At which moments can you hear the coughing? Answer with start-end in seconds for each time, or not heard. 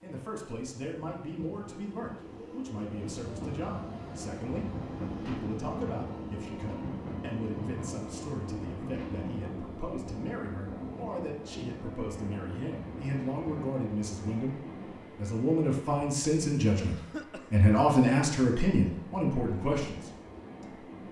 16.8-17.6.